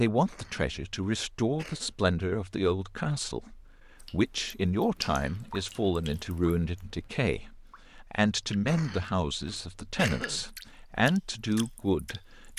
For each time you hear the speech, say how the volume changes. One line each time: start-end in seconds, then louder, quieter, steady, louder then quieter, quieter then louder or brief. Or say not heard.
0.0-12.5 steady.